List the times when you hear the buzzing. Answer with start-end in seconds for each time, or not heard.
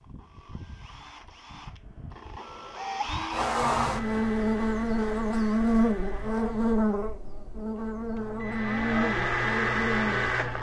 3.3-10.3.